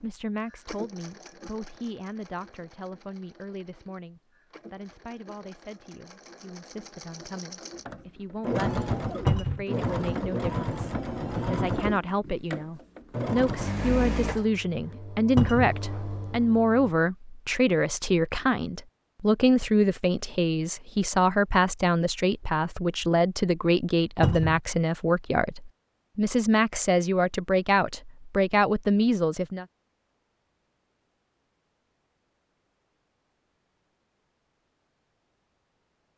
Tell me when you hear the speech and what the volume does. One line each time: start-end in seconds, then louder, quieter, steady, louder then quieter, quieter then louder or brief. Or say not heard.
0.0-29.6 louder.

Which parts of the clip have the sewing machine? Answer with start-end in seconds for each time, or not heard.
0.0-16.9.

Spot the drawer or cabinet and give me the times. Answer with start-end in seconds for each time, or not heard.
9.2-9.7, 15.3-15.8, 24.2-24.6.